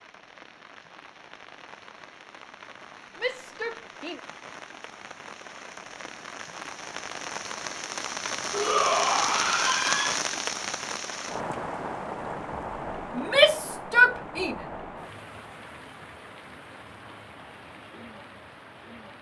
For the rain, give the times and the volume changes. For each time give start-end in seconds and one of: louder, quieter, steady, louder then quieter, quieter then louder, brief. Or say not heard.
0.0-19.1 louder then quieter.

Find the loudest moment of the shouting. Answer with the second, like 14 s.
14 s.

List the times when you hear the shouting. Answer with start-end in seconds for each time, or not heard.
3.1-4.2, 8.5-10.2, 13.2-14.6.